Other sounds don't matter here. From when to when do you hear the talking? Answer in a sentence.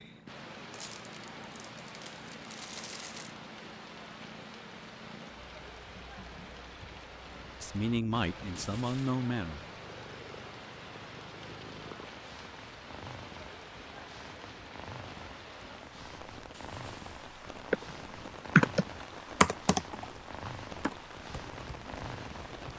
You can hear the talking from 7.6 to 9.7 s.